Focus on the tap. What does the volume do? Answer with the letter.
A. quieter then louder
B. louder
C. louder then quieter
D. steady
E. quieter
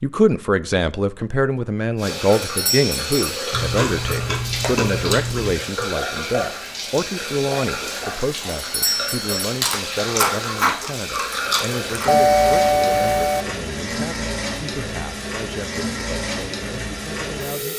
D.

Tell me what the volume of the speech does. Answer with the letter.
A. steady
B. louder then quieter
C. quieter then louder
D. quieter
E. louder
D.